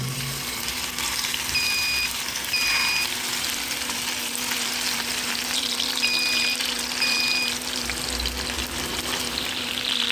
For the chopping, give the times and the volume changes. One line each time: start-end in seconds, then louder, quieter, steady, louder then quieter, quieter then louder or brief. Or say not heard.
not heard.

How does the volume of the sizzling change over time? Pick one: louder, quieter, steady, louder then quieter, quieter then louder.
steady.